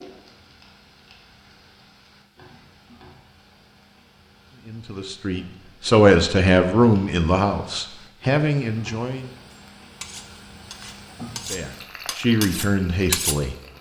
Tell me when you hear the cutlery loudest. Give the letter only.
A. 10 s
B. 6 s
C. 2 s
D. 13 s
D.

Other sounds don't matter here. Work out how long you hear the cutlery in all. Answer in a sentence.
You can hear the cutlery for 4 seconds altogether.